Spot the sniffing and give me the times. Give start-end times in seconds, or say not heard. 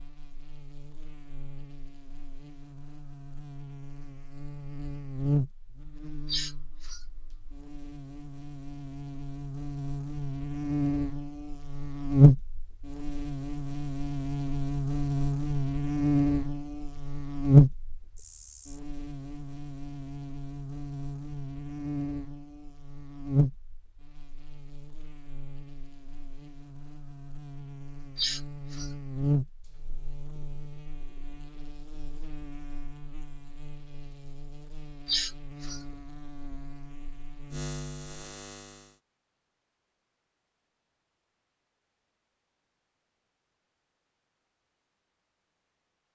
6.2-7.0, 28.1-28.9, 35.0-35.8.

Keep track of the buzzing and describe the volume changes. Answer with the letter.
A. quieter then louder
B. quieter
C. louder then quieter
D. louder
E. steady
C.